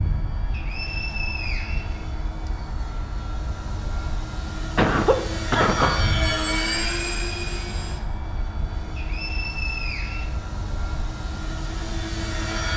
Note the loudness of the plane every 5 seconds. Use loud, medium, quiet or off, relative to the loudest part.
medium, loud, loud.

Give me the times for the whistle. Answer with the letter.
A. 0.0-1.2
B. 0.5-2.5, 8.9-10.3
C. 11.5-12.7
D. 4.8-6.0
B.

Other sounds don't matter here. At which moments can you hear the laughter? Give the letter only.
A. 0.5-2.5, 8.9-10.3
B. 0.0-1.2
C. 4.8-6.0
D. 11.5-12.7
C.